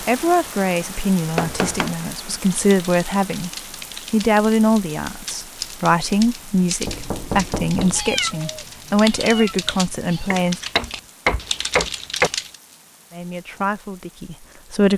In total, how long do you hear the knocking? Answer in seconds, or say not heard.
4 s.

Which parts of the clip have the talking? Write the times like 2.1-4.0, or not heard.
0.0-3.5, 4.1-10.6, 13.1-14.9.